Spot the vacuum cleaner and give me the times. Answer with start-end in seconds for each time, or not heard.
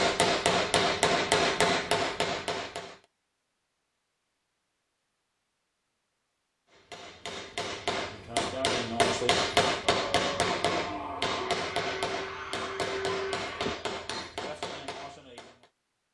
9.8-13.8.